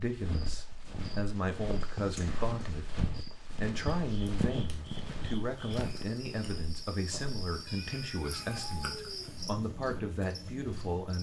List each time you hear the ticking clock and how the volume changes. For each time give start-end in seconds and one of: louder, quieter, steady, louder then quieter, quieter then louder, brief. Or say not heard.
not heard.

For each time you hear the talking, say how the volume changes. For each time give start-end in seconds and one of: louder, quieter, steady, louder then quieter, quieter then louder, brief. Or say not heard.
0.0-11.1 steady.